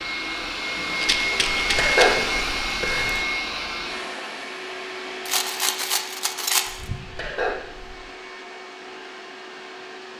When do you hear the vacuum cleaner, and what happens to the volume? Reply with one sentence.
You can hear the vacuum cleaner from 0.0 to 10.1 s, getting quieter.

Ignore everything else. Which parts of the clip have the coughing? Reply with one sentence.
You can hear the coughing from 1.6 to 3.2 s and from 7.0 to 8.1 s.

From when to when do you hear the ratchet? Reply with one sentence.
You can't hear the ratchet here.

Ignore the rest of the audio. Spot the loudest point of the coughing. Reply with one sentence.
The volume of the coughing peaks at 2 seconds.